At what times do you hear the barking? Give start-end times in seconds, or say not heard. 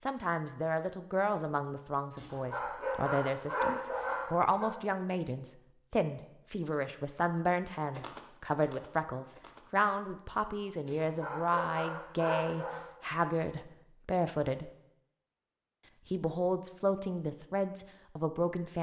2.1-4.7, 10.8-12.8.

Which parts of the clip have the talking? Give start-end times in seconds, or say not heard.
0.1-14.7, 16.1-18.7.